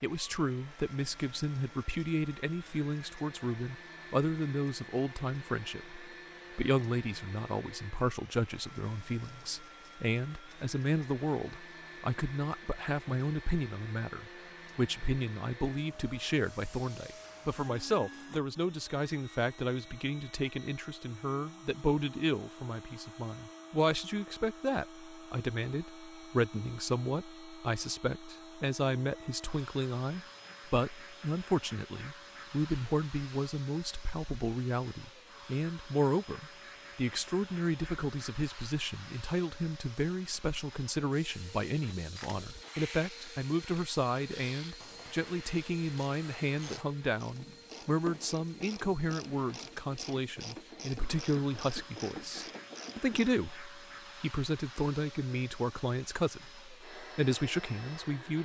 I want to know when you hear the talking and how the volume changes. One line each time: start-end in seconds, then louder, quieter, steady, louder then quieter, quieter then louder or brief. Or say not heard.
0.0-58.4 steady.